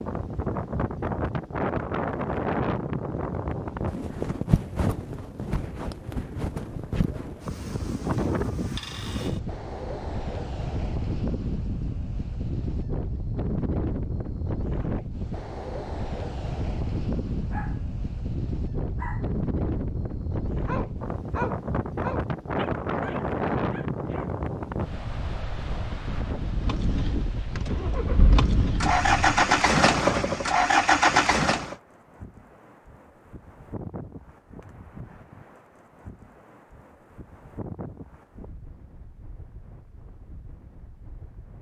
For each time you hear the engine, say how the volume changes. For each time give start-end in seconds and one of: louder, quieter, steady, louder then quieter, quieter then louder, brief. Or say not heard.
26.5-31.8 louder.